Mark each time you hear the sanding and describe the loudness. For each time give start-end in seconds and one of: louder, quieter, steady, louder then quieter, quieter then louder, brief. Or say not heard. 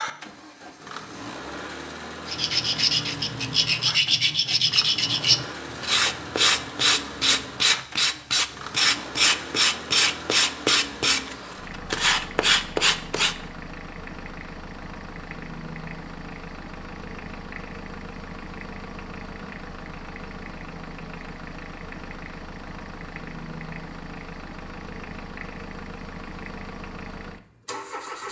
2.2-13.3 steady.